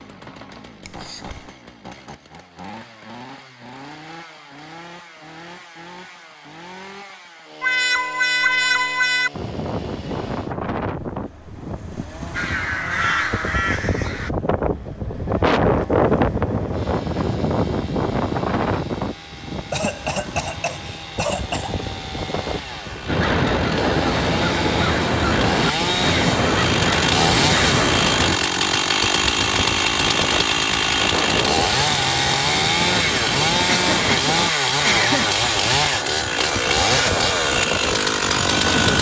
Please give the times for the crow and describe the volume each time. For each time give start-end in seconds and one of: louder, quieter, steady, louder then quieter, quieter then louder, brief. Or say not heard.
12.3-14.3 brief
23.1-28.4 steady.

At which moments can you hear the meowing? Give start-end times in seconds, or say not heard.
7.6-9.3.